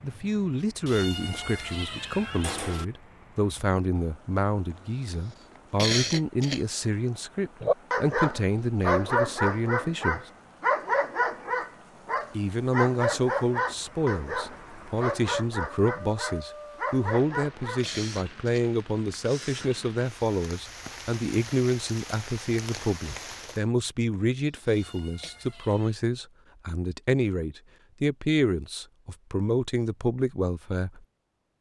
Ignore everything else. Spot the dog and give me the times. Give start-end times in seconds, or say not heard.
7.6-17.9.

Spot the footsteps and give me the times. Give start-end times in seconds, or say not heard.
not heard.